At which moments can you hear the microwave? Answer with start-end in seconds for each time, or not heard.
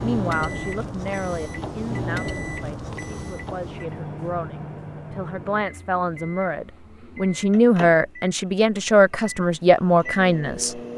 0.0-10.9.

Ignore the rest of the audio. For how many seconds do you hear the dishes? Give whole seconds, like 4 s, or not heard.
not heard.